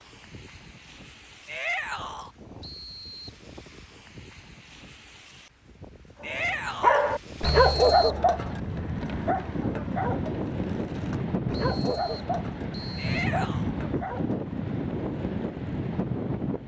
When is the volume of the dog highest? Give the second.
8 s.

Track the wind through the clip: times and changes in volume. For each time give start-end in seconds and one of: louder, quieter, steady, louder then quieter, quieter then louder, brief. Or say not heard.
0.0-16.6 louder.